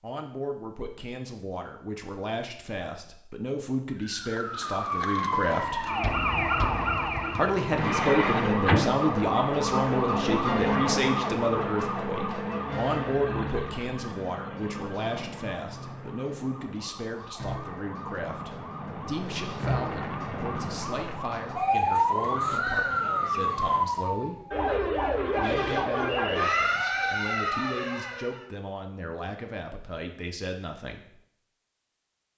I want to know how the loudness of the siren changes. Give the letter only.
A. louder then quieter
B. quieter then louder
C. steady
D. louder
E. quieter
B.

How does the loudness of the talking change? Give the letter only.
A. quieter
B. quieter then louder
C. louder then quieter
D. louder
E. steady
C.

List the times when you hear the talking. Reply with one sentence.
You can hear the talking from 0.0 to 5.9 s, from 7.3 to 24.4 s and from 25.4 to 31.1 s.